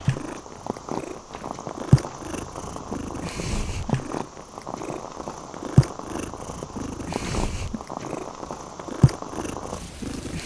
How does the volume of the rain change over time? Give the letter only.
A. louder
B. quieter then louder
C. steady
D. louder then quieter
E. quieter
C.